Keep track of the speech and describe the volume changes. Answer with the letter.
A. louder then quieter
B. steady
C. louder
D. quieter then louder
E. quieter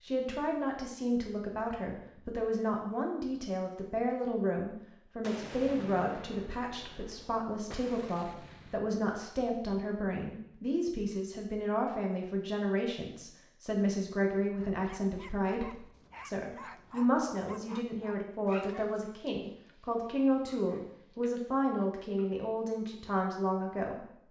B.